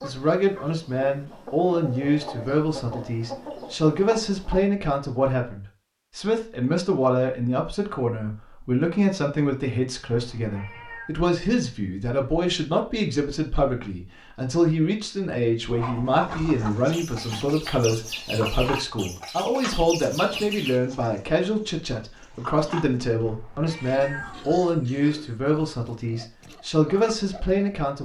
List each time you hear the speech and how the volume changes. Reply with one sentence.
The speech can be heard from 0.0 to 28.0 s, at a steady volume.